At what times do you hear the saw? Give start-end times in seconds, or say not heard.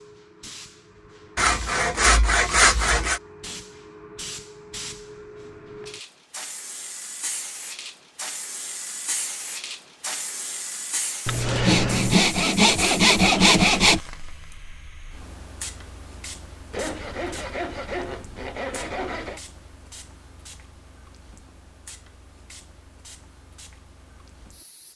1.4-3.2, 11.2-14.0, 16.7-19.4.